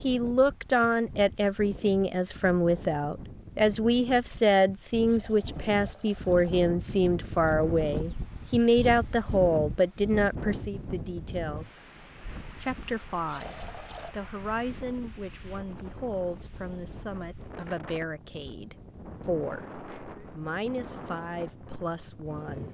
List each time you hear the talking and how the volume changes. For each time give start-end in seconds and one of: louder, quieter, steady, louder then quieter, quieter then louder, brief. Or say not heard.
0.0-11.8 steady
12.6-22.6 steady.